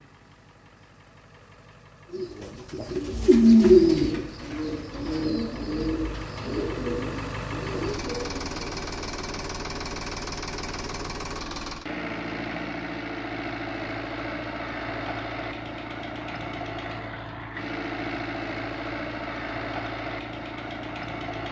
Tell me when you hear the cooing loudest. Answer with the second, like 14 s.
4 s.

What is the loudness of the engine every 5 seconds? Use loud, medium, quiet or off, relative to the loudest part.
quiet, loud, loud, loud, loud.